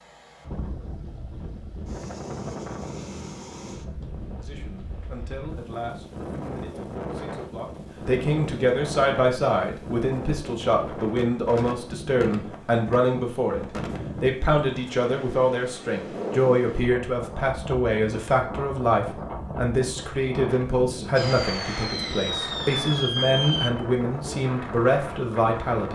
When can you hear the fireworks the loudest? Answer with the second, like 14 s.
23 s.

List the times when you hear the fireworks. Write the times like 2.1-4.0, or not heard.
21.1-23.7.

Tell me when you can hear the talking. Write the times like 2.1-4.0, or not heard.
4.4-25.9.